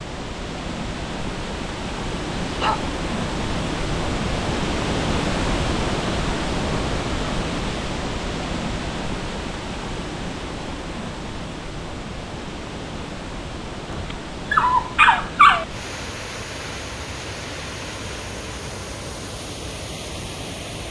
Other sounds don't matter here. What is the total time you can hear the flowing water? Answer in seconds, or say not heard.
21 s.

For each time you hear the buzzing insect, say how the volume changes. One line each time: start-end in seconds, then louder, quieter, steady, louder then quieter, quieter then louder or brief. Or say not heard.
not heard.